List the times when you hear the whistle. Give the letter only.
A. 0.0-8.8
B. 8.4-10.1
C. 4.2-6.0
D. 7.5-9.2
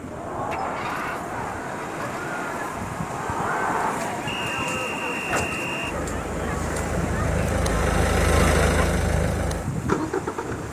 C.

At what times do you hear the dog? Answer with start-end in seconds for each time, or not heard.
not heard.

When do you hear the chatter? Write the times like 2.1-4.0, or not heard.
0.0-8.8.